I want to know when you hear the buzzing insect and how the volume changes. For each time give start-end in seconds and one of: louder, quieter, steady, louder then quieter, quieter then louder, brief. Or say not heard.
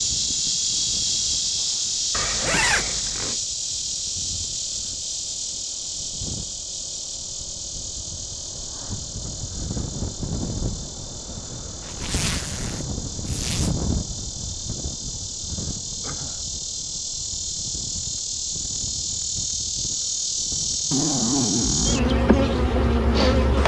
0.0-23.6 quieter then louder.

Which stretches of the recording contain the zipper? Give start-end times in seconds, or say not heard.
2.1-3.4, 11.8-13.7, 20.9-22.1.